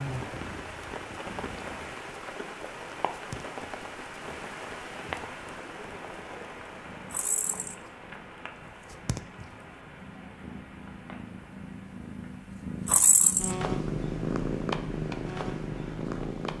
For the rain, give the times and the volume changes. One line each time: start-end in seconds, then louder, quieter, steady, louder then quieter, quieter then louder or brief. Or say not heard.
0.0-16.5 quieter.